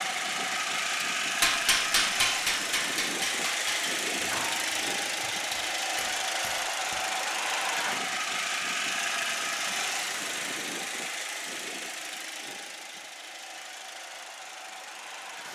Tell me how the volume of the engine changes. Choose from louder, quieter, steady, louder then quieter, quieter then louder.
quieter.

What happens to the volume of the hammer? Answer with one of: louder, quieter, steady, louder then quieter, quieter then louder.
quieter.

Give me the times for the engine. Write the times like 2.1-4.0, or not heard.
0.0-15.5.